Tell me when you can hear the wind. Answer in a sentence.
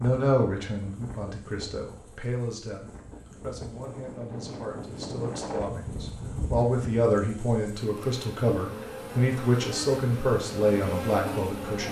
The wind can be heard from 0.0 to 7.0 s.